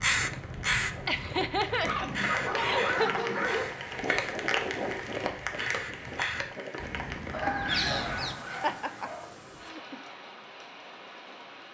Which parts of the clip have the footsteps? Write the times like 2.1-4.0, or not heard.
not heard.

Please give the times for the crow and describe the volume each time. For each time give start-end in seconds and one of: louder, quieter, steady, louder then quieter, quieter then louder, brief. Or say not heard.
0.0-8.4 quieter then louder.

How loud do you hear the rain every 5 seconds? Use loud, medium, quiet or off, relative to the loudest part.
loud, loud, medium.